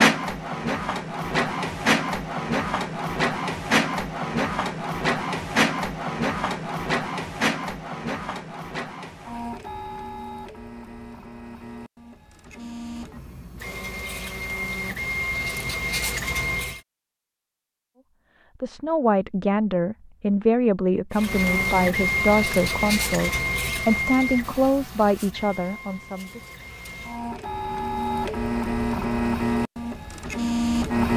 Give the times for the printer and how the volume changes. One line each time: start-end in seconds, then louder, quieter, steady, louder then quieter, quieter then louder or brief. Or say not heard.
0.0-16.8 quieter then louder
21.1-31.1 quieter then louder.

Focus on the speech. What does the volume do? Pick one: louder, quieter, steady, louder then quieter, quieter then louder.
steady.